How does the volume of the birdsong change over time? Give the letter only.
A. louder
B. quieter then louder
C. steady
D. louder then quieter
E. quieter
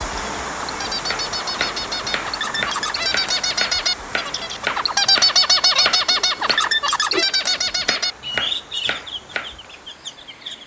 D.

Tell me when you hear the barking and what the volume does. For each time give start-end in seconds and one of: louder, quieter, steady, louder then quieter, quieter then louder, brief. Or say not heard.
not heard.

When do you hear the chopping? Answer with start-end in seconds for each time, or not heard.
1.1-9.6.